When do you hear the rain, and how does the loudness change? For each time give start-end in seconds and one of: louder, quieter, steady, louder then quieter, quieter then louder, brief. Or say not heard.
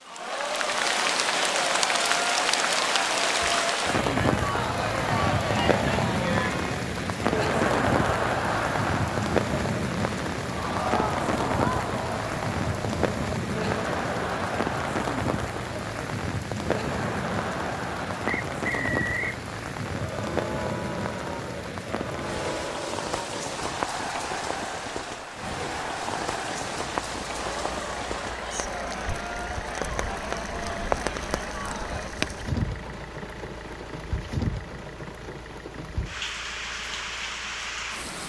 0.1-38.2 quieter.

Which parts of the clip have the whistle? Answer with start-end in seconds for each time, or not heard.
18.2-19.4.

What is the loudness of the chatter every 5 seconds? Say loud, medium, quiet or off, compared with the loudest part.
loud, loud, loud, medium, medium, medium, medium, off.